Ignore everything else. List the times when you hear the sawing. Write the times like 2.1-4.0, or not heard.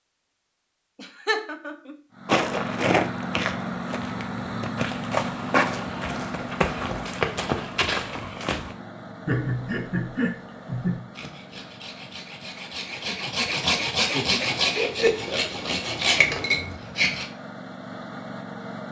11.1-17.2.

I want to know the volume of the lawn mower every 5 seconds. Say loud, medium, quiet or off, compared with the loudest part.
loud, loud, quiet, medium.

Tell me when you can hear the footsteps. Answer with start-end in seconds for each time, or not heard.
2.2-8.8.